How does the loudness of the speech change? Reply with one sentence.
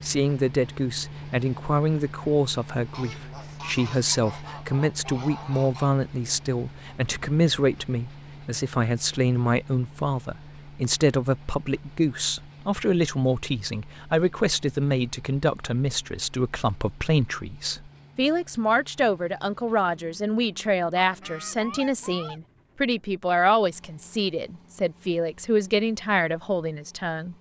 The volume of the speech stays about the same.